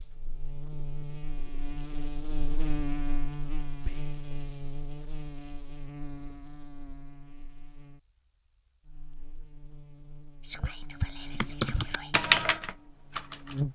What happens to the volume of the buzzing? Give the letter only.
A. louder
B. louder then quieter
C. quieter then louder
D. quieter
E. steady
C.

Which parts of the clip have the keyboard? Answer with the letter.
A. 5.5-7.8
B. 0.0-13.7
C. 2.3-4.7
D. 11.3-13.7
D.